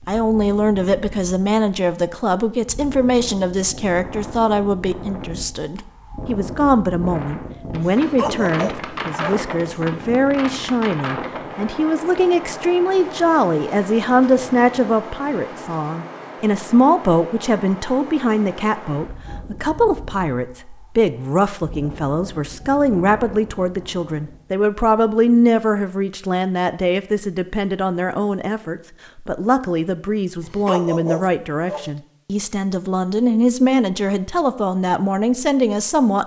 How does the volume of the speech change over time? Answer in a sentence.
The volume of the speech stays about the same.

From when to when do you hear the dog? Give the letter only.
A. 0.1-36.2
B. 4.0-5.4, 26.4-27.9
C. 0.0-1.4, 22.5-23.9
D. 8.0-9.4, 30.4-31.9
D.